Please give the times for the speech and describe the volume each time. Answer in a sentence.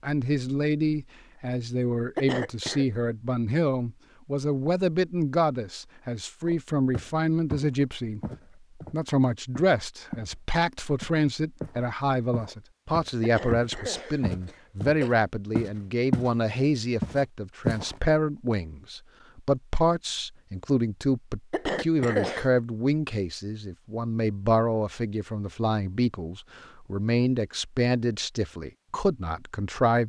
The speech can be heard from 0.0 to 8.2 s, at a steady volume; and from 8.9 to 30.0 s, at a steady volume.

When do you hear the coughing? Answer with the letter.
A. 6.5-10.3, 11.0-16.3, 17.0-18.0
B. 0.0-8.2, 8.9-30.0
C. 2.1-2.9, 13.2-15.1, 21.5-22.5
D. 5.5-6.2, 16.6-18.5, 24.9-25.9
C.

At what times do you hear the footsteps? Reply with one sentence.
You can hear the footsteps from 6.5 to 10.3 s, from 11.0 to 16.3 s and from 17.0 to 18.0 s.